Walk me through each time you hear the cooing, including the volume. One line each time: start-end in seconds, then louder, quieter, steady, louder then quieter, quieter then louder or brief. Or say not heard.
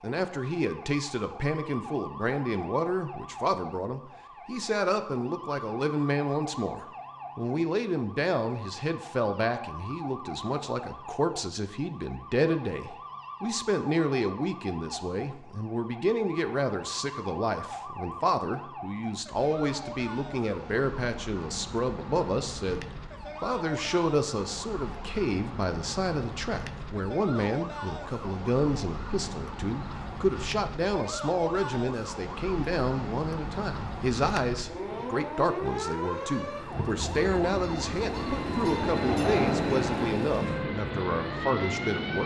not heard.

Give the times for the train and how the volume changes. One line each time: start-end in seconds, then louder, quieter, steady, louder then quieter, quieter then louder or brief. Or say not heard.
36.6-42.2 louder then quieter.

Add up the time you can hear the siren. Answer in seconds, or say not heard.
42 s.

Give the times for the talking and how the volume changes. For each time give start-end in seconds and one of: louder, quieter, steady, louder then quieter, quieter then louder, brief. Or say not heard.
0.0-42.2 steady.